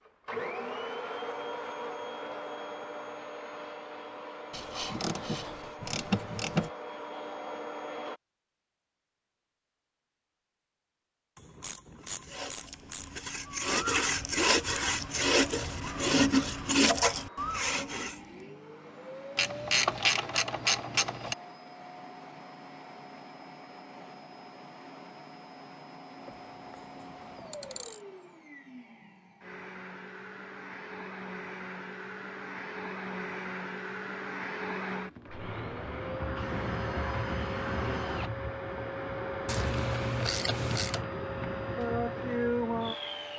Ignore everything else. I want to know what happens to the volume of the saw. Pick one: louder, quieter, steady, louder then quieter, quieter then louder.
louder.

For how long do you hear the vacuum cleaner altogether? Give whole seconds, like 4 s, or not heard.
37 s.